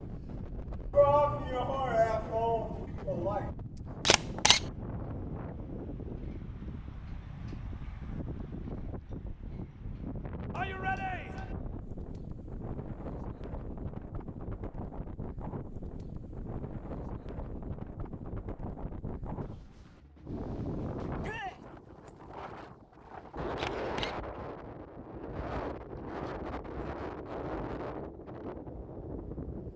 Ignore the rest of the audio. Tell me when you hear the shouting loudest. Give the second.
1 s.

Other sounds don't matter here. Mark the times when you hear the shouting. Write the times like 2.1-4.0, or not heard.
0.9-3.5, 10.5-11.6, 21.2-21.6.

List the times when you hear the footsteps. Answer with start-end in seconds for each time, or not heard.
not heard.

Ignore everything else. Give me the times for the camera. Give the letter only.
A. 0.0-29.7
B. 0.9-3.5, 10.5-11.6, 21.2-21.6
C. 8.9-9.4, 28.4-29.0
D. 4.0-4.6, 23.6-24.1
D.